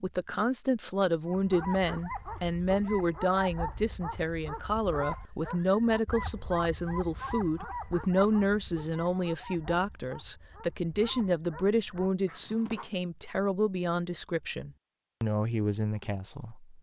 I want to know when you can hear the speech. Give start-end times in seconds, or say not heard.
0.0-16.7.